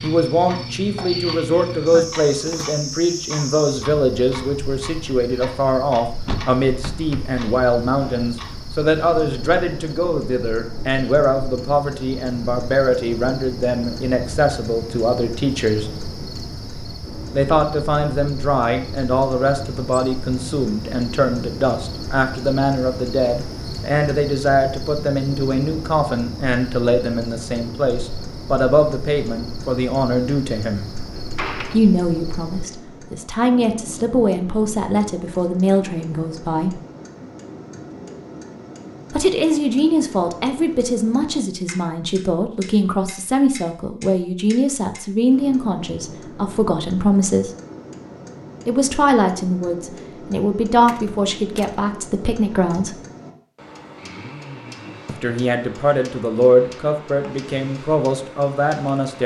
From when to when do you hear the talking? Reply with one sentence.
You can hear the talking from 0.0 to 15.9 s, from 17.3 to 30.9 s, from 31.7 to 36.8 s, from 39.1 to 47.5 s, from 48.6 to 53.0 s and from 55.0 to 59.2 s.